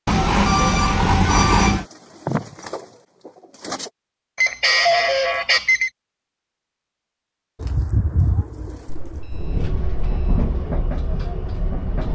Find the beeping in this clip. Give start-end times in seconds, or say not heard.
0.1-1.9, 4.3-5.9, 8.8-10.5.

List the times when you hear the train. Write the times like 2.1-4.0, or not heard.
9.3-12.1.